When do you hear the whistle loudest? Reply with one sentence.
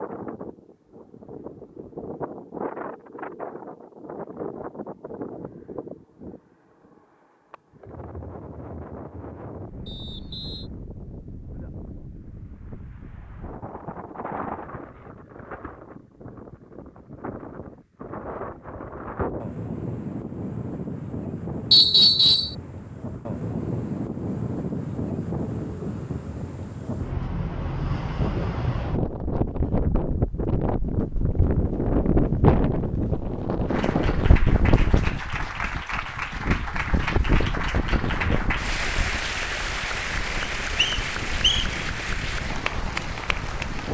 The volume of the whistle peaks at 22 seconds.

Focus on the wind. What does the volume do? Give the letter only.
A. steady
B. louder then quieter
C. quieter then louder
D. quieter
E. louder
B.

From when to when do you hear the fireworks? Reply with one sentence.
The fireworks can't be heard in this clip.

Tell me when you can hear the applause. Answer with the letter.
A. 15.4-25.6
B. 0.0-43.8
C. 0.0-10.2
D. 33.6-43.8
D.